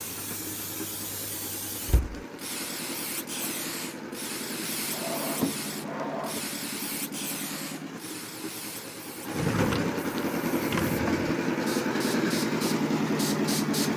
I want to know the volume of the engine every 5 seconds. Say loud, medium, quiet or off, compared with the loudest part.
quiet, medium, loud.